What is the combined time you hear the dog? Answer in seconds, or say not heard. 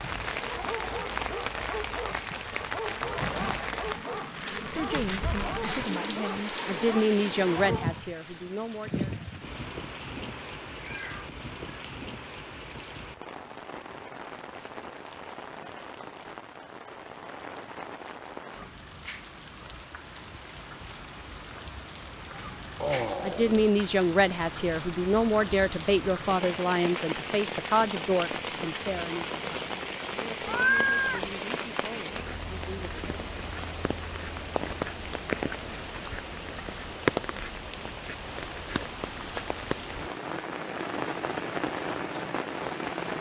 8 s.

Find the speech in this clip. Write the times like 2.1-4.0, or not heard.
4.7-9.1, 23.2-33.3.